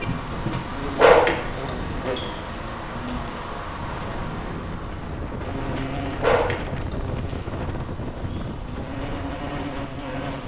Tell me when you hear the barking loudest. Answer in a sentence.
The volume of the barking peaks at 1 second.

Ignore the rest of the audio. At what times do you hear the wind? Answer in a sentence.
The wind can be heard from 0.0 to 10.4 s.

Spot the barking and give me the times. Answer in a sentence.
You can hear the barking from 0.3 to 1.8 s and from 5.5 to 7.0 s.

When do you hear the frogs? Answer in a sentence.
The frogs can't be heard in this clip.